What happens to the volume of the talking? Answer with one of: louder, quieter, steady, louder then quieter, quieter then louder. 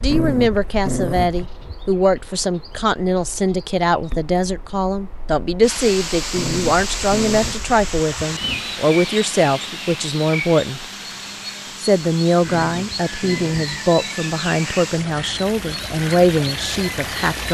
steady.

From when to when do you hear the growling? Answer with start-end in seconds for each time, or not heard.
0.1-1.9, 6.3-8.8, 12.4-13.8.